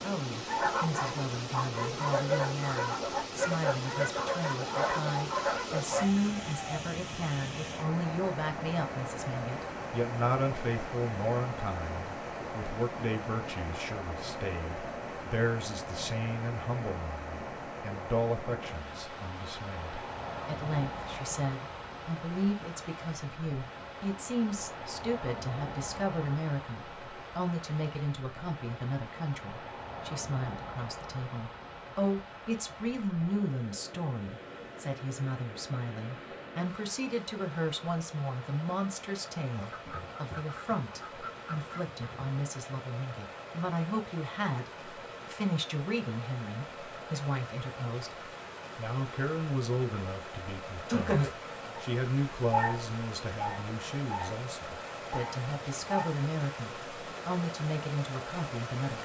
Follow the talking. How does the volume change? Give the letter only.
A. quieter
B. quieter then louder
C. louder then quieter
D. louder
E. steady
E.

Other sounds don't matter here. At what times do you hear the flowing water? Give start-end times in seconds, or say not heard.
0.0-59.0.